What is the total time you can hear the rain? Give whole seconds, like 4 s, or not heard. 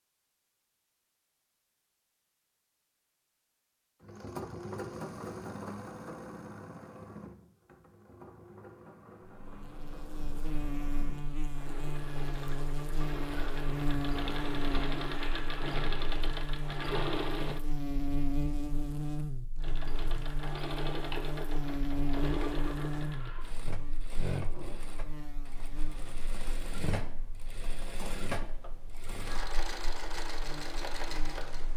not heard.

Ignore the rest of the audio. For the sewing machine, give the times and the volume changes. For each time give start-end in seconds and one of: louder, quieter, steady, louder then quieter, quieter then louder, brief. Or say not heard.
4.0-17.6 quieter then louder
19.6-31.7 quieter then louder.